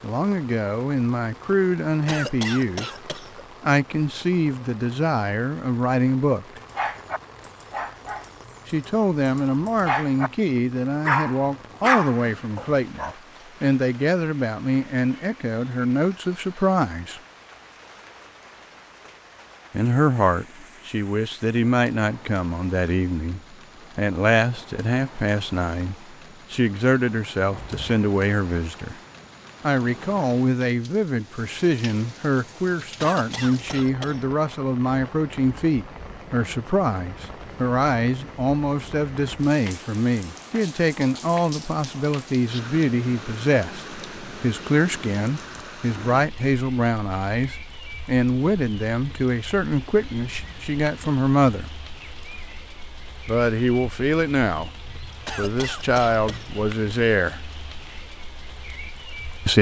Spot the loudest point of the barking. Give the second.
12 s.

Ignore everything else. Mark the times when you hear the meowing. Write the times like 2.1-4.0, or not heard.
not heard.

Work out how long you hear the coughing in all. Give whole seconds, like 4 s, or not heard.
4 s.